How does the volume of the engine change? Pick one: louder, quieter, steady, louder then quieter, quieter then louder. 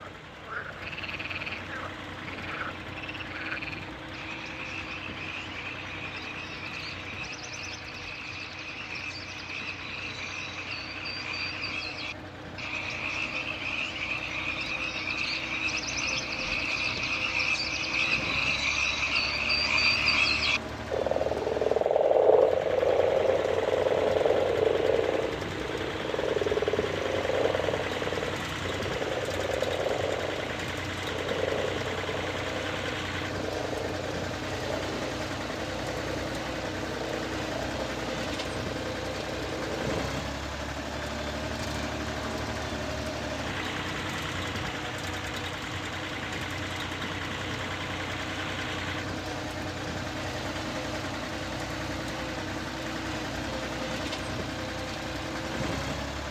louder.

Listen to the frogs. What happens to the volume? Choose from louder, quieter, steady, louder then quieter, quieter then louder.
louder then quieter.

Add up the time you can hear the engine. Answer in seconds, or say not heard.
56 s.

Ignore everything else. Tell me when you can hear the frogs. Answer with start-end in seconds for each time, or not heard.
0.0-40.2.